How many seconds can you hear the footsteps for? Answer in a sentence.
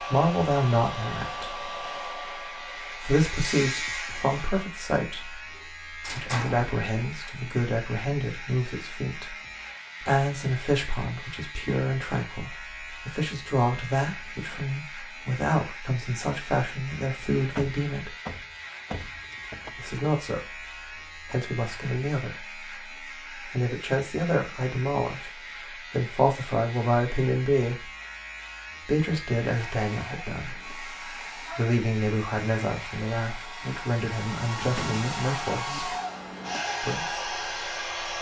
You can't hear the footsteps here.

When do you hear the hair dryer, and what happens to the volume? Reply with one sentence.
You can hear the hair dryer from 0.0 to 4.7 s, getting quieter; and from 29.5 to 38.1 s, getting louder.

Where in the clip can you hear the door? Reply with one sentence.
You can hear the door from 5.5 to 6.7 s, from 17.6 to 19.8 s and from 34.5 to 35.8 s.